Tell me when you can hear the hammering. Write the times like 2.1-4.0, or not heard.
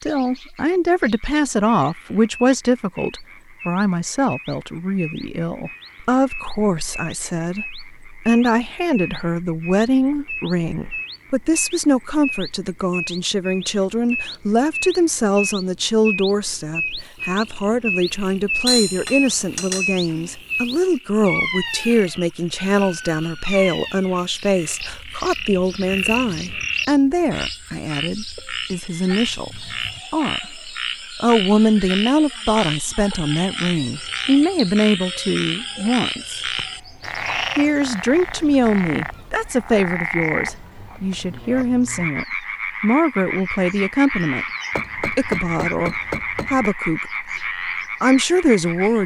18.6-20.3, 44.8-46.7.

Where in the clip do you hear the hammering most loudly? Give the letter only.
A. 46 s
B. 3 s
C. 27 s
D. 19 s
D.